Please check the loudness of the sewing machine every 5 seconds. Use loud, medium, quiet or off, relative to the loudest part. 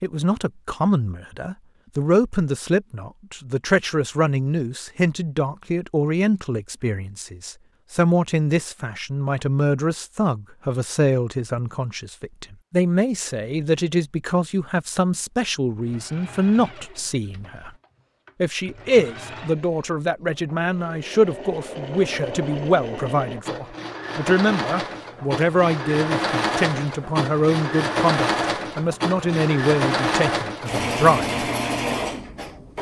off, off, off, quiet, medium, loud, loud.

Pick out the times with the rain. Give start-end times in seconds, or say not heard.
not heard.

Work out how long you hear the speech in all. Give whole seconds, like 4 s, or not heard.
31 s.